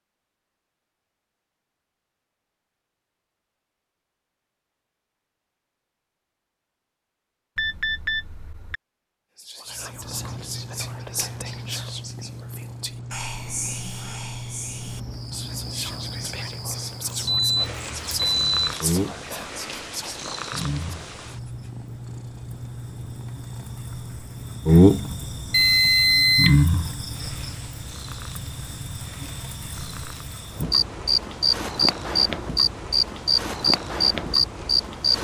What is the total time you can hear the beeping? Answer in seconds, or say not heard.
4 s.